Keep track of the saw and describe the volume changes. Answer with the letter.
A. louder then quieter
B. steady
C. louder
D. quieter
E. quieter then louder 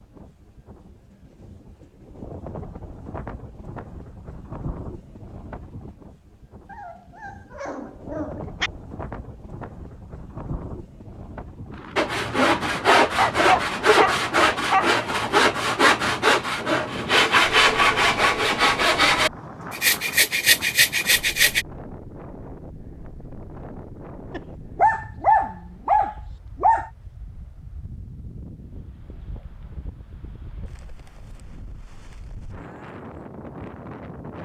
B.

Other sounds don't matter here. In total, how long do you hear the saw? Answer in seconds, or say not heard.
10 s.